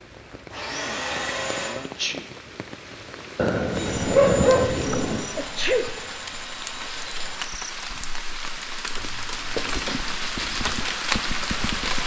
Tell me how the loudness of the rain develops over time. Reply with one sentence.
The volume of the rain goes up.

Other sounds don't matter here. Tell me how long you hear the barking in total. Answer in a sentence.
The barking can be heard for 2 seconds in total.